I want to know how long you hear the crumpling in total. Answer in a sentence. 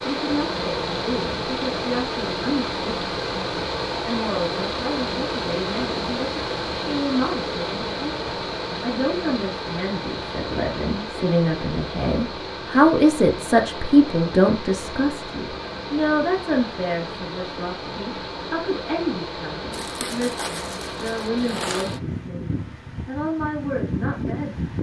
You can hear the crumpling for 2 seconds altogether.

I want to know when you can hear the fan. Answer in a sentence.
You can hear the fan from 0.0 to 24.7 s.